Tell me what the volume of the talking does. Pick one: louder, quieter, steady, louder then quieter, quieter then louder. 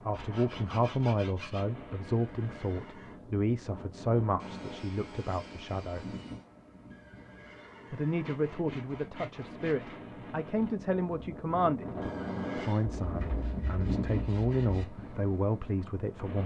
steady.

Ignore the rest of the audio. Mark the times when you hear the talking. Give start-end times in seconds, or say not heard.
0.1-6.2, 7.9-16.4.